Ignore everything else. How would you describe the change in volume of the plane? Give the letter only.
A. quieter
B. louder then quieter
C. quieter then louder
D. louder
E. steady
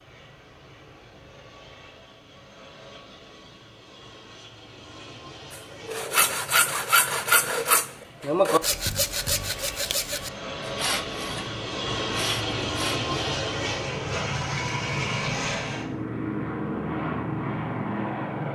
D.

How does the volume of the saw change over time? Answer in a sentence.
The loudness of the saw goes down.